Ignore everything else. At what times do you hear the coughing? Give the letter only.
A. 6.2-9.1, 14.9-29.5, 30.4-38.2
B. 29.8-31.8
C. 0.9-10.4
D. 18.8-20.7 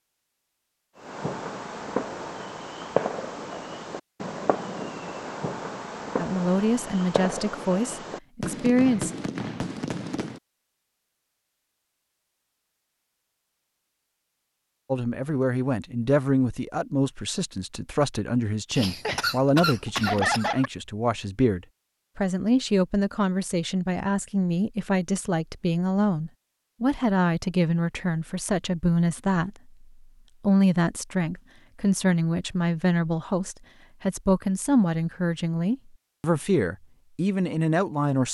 D.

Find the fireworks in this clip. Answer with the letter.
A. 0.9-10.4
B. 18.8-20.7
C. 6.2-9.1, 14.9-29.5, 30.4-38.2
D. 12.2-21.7
A.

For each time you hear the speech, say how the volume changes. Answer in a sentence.
The speech can be heard briefly from 6.2 to 9.1 s; from 14.9 to 29.5 s, at a steady volume; and from 30.4 to 38.2 s, at a steady volume.